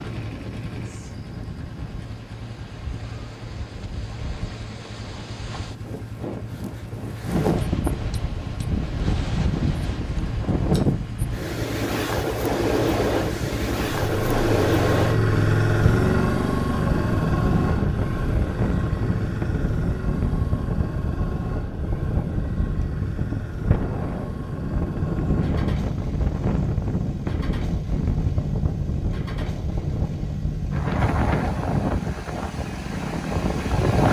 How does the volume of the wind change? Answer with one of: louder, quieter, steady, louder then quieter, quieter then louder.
louder.